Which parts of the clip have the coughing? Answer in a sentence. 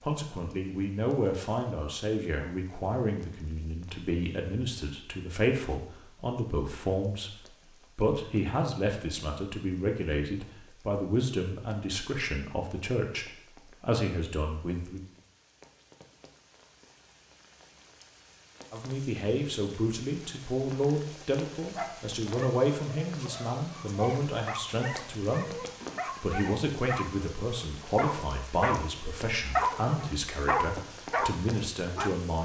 The coughing can't be heard in this clip.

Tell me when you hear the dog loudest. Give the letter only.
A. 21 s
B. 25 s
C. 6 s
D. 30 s
D.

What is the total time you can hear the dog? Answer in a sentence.
The dog can be heard for 10 seconds in total.